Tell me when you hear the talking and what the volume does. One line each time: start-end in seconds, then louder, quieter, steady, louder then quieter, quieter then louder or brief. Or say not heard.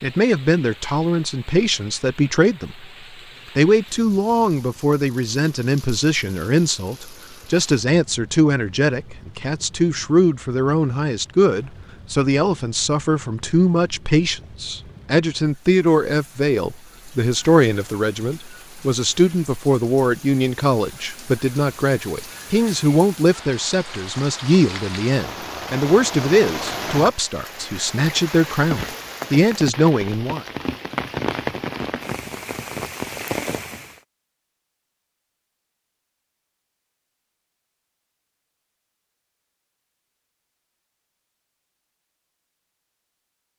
0.0-2.9 brief
3.5-30.4 steady.